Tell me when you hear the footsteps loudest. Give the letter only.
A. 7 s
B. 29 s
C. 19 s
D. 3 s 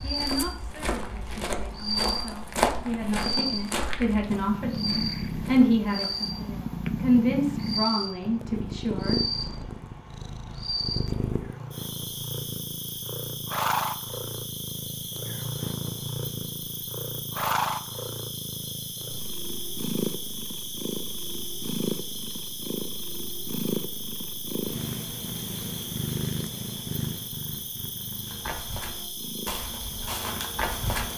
D.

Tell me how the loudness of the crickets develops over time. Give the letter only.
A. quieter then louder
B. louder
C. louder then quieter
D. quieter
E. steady
D.